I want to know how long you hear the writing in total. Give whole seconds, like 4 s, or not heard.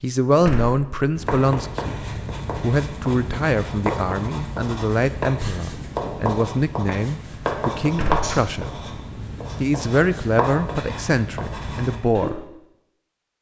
11 s.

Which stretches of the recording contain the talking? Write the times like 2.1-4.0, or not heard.
0.0-8.8, 9.6-12.3.